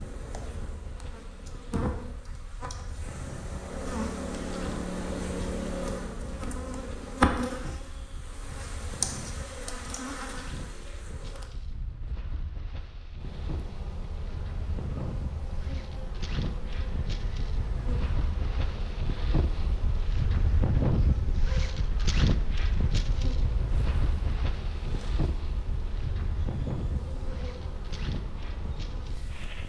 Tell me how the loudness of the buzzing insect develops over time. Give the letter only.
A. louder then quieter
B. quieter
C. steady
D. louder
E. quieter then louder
B.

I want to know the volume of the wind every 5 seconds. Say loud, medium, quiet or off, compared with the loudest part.
quiet, quiet, quiet, medium, loud, medium.